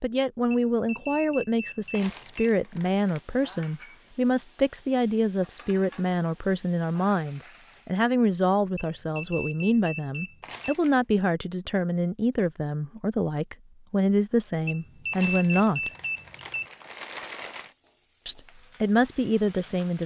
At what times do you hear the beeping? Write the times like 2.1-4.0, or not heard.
0.5-2.5, 8.8-10.8, 14.7-16.6.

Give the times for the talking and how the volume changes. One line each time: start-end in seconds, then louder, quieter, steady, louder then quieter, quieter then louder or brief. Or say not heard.
0.0-15.9 steady
18.2-20.0 brief.